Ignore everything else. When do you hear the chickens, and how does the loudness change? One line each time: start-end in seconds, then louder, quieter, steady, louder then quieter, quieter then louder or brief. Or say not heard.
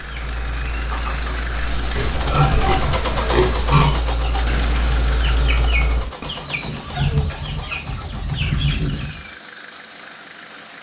0.0-9.2 louder.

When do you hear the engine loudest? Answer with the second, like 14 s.
3 s.